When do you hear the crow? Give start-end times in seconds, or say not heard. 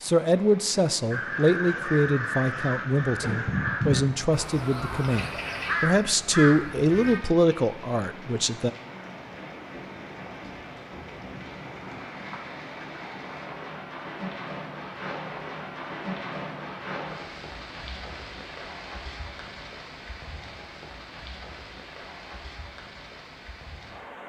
1.1-7.2.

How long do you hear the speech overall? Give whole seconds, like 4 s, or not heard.
9 s.